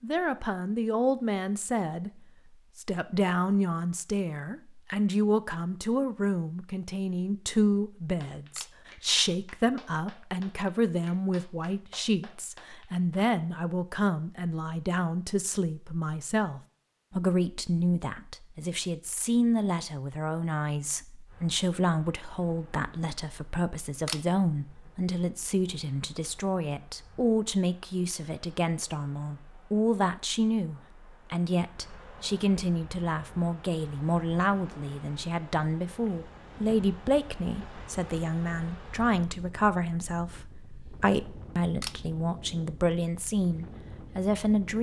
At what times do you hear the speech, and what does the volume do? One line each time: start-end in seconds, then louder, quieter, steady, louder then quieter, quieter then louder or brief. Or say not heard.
0.0-44.7 steady.